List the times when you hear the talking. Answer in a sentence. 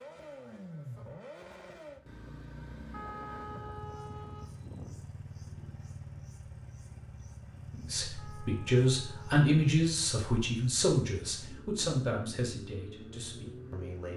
The talking can be heard from 7.8 to 14.1 s.